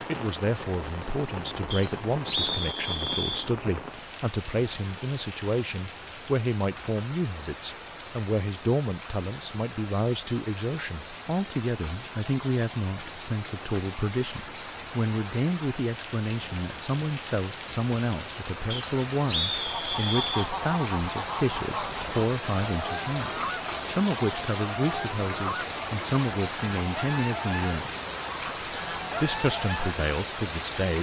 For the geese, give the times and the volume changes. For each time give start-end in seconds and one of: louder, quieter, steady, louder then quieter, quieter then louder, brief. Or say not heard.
19.6-29.9 steady.